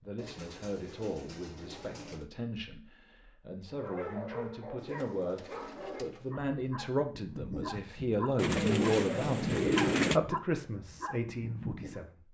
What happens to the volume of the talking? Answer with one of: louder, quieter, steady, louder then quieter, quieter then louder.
louder.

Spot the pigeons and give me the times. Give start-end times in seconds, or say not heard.
0.1-2.2, 4.8-6.3, 8.3-10.2.